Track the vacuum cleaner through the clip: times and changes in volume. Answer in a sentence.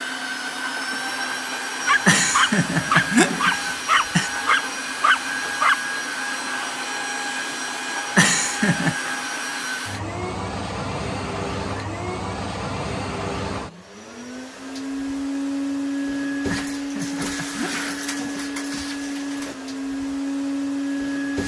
The vacuum cleaner can be heard from 0.0 to 21.4 s, at a steady volume.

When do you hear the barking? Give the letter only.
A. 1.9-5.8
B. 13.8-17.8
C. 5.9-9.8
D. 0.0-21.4
A.